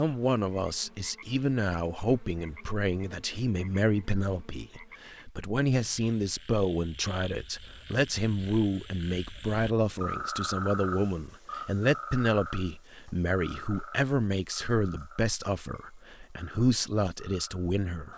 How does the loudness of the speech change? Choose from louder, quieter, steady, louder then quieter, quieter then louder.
steady.